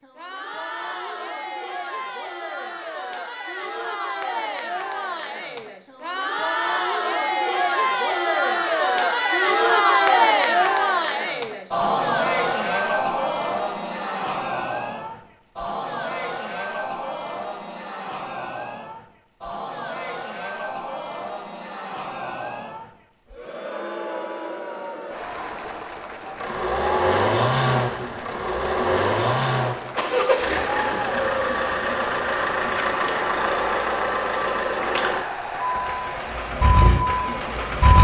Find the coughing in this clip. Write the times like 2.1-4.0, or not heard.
not heard.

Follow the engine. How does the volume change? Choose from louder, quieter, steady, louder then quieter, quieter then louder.
steady.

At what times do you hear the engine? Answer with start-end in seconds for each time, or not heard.
26.4-37.9.